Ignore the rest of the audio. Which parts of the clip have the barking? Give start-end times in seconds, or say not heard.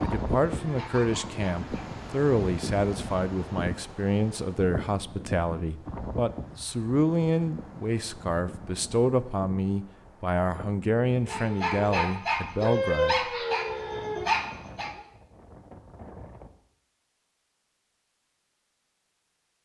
0.0-2.0, 11.2-14.9.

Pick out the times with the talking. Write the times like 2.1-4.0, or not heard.
0.0-13.2.